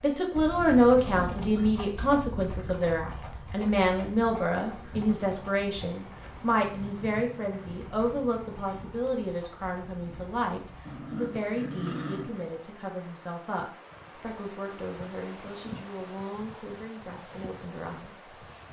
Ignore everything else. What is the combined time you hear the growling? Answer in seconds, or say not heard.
2 s.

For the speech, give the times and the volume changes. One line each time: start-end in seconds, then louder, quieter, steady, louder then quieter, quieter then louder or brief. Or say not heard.
0.0-18.4 quieter.